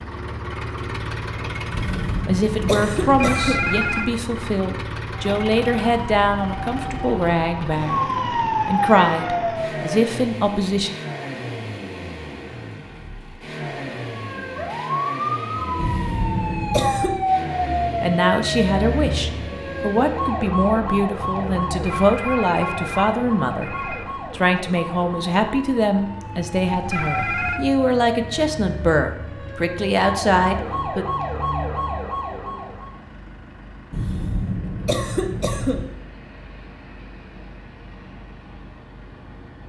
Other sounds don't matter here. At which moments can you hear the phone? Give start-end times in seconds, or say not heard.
3.0-4.1, 21.8-24.1, 26.6-27.6.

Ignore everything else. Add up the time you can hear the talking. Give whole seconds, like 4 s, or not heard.
21 s.